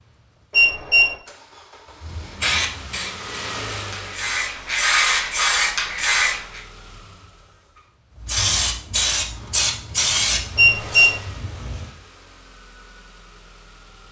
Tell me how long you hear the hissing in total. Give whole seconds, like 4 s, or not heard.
8 s.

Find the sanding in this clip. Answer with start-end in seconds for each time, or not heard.
not heard.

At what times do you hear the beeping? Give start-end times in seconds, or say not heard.
0.5-1.1, 10.6-11.2.